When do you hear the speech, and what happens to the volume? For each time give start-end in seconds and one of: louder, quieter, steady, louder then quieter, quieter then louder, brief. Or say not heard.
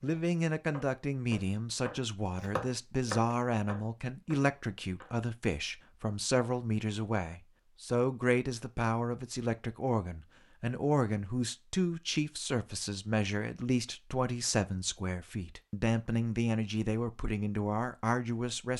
0.0-18.7 steady.